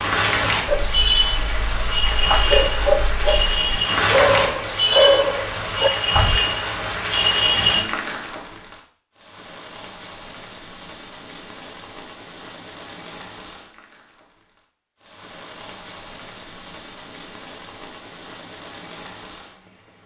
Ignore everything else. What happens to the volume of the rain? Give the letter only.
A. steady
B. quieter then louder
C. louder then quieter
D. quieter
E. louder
D.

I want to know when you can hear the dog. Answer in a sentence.
You can hear the dog from 0.7 to 6.4 s.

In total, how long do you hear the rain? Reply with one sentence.
The rain can be heard for 20 seconds in total.